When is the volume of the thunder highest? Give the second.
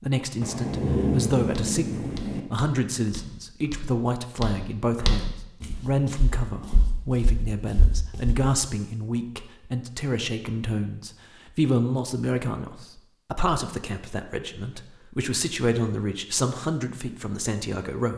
1 s.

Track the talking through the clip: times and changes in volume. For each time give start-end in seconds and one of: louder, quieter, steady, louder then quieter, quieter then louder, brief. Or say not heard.
0.0-18.1 steady.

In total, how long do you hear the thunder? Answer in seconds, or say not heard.
2 s.